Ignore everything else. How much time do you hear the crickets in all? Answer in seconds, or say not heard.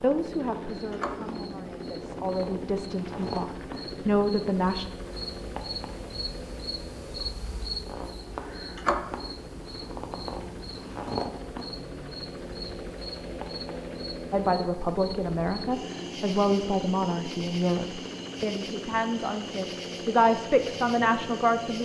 22 s.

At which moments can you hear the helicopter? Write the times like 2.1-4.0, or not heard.
0.0-21.8.